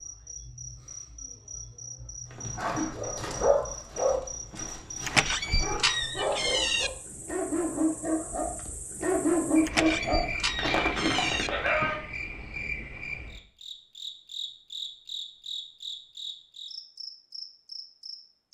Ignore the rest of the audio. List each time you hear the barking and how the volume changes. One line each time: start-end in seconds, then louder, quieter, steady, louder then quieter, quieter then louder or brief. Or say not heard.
2.3-12.0 quieter then louder.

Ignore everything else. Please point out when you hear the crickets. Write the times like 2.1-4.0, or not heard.
0.0-18.4.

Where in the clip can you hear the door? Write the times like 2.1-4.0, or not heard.
5.0-6.9, 9.7-11.5.